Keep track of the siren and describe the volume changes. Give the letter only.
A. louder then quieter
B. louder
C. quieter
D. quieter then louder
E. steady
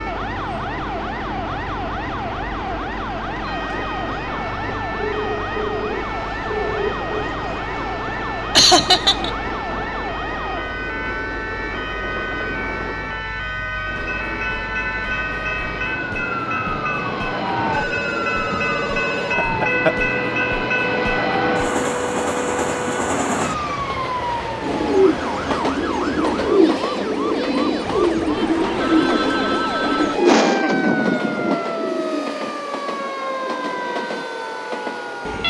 E.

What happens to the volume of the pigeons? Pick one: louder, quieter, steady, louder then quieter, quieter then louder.
quieter.